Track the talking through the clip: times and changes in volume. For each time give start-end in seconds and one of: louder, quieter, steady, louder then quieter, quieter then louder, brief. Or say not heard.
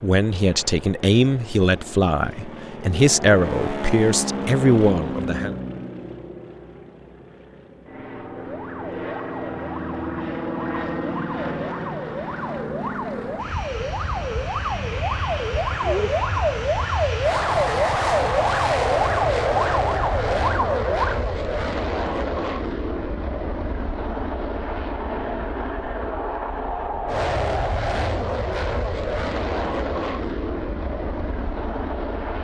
0.0-5.5 steady.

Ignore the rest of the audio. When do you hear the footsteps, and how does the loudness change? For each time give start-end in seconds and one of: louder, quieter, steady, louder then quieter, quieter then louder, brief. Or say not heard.
not heard.